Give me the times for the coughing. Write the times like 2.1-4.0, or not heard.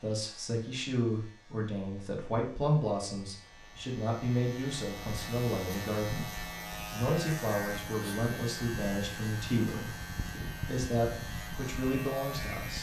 not heard.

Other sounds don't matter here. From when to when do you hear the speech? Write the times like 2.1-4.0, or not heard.
0.0-12.7.